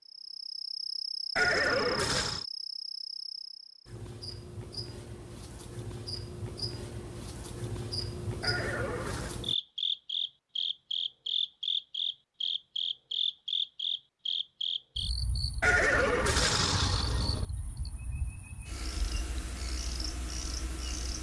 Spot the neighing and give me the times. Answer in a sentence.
You can hear the neighing from 1.4 to 2.5 s, from 8.4 to 9.4 s and from 15.6 to 17.4 s.